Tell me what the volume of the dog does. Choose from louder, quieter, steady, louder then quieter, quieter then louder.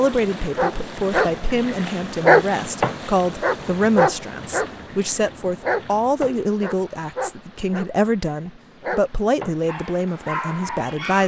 quieter.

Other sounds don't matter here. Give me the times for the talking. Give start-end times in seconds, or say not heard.
0.0-11.2.